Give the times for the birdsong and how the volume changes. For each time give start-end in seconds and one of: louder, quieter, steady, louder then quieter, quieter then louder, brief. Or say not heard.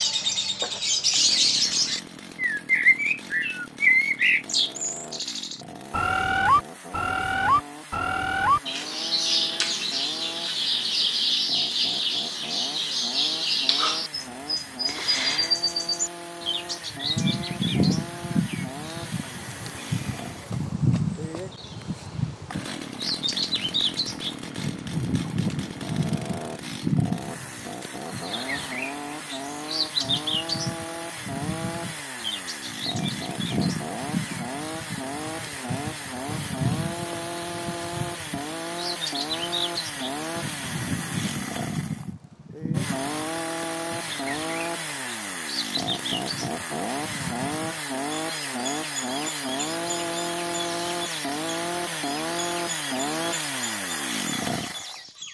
0.0-55.2 quieter.